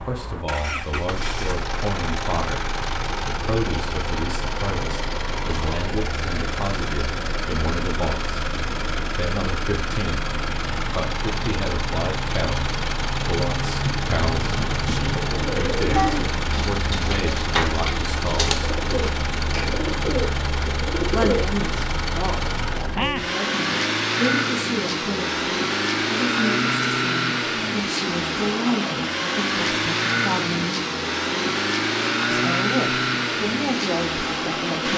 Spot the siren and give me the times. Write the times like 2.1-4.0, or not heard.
not heard.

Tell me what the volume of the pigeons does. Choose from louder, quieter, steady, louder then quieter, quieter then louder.
steady.